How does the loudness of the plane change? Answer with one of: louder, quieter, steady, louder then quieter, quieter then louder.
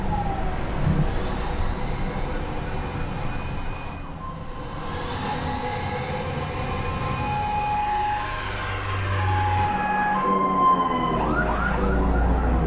louder.